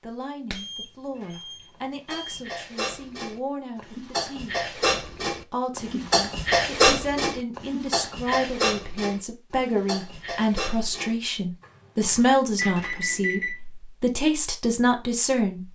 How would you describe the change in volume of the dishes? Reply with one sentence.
The volume of the dishes goes up, then down.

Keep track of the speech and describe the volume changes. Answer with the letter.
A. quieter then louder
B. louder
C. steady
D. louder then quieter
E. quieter
B.